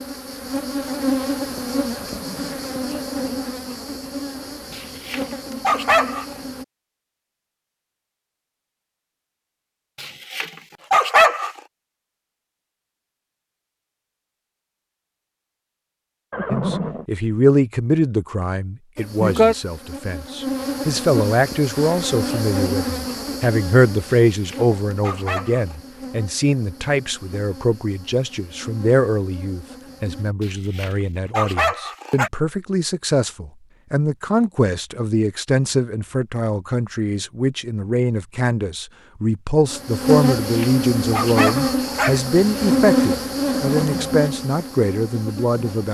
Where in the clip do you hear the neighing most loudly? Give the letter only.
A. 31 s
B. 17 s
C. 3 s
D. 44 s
B.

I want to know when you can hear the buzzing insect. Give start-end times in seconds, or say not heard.
0.0-6.7, 18.9-30.4, 39.6-45.8.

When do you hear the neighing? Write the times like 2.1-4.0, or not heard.
1.9-2.7, 16.3-17.1, 43.5-44.2.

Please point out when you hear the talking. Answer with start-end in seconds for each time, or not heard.
16.5-45.8.